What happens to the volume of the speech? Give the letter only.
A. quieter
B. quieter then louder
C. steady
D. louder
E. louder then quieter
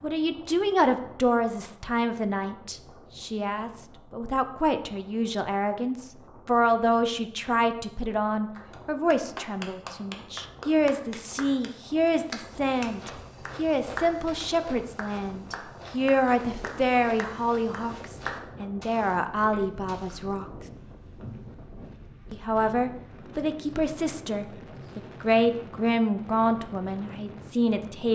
C.